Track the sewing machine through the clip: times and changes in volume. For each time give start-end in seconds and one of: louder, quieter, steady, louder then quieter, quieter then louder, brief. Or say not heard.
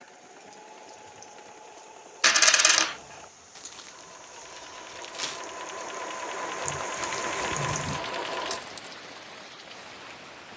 0.0-8.7 louder.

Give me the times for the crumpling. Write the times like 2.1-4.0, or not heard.
3.5-5.5.